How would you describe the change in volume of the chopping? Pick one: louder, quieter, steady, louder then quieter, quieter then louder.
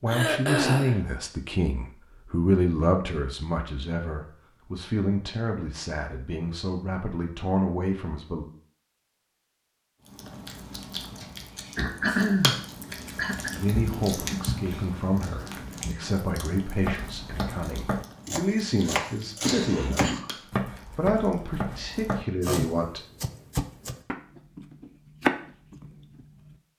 louder.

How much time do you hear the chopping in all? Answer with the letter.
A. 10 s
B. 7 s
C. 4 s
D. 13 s
A.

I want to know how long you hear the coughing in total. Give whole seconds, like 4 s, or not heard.
4 s.